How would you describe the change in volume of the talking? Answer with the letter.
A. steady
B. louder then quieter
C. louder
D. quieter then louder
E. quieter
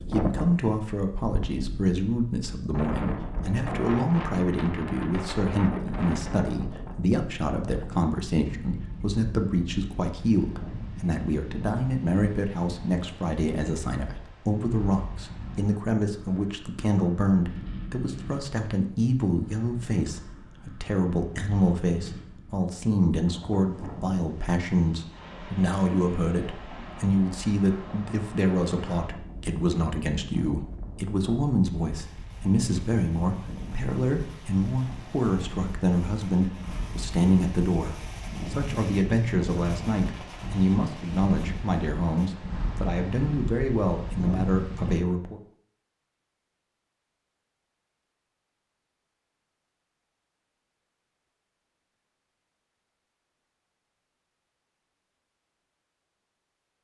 A.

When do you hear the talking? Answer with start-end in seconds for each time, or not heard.
0.1-45.4.